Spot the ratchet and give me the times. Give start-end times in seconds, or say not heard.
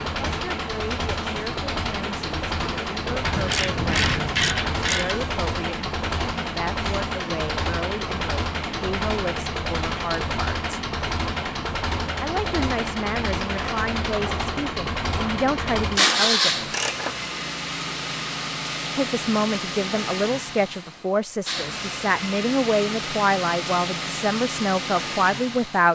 3.2-5.2, 15.9-17.3.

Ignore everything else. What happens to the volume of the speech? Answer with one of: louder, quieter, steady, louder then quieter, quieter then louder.
louder.